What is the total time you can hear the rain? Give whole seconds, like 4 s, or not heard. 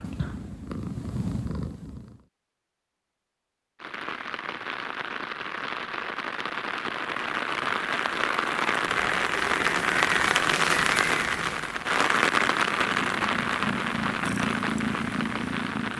12 s.